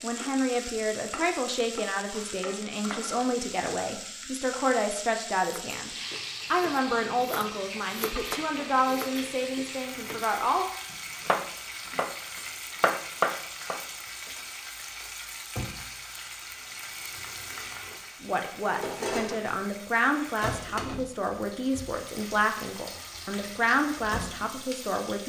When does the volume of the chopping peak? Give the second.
13 s.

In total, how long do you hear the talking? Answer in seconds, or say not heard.
18 s.